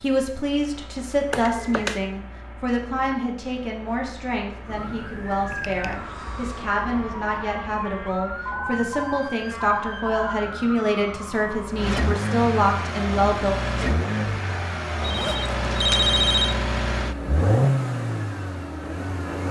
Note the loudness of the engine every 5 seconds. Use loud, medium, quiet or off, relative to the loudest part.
quiet, quiet, loud, loud.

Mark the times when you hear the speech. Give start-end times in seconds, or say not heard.
0.0-13.6.